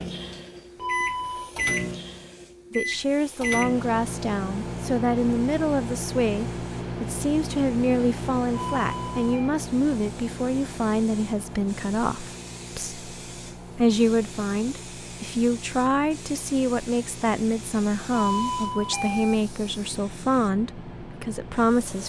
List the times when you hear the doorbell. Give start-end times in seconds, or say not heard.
0.8-1.5, 8.5-9.6, 18.1-19.4.